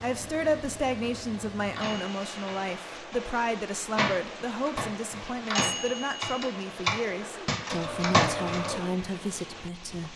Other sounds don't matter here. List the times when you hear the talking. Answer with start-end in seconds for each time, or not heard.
0.0-10.1.